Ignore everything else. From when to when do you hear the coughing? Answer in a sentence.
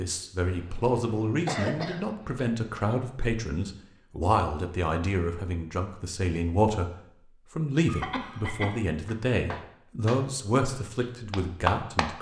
You can hear the coughing from 0.5 to 3.0 s and from 7.8 to 8.8 s.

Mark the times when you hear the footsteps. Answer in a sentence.
The footsteps can't be heard in this clip.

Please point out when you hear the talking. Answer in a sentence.
You can hear the talking from 0.0 to 6.9 s and from 7.5 to 12.1 s.